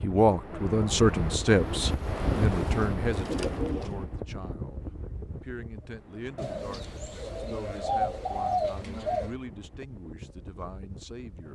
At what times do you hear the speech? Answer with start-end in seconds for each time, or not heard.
0.0-11.4.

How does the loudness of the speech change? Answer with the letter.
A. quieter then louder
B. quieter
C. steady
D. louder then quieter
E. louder
B.